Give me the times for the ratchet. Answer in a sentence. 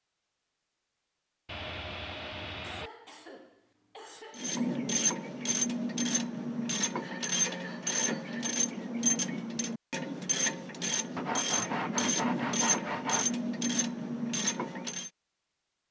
The ratchet can be heard from 4.3 to 15.1 s.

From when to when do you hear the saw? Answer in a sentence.
You can hear the saw from 1.4 to 2.9 s, from 7.0 to 8.6 s and from 11.2 to 13.3 s.